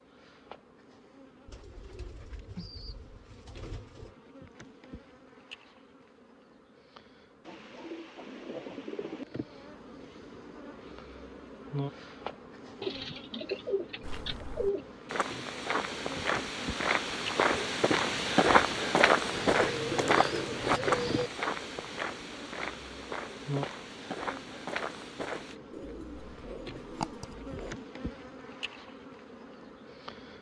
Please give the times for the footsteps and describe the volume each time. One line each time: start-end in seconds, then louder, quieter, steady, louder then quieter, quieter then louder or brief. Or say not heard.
14.0-25.6 louder then quieter.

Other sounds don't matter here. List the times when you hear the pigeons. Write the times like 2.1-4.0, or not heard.
1.4-4.2, 7.5-9.2, 12.8-14.8, 19.3-21.3, 25.7-27.8.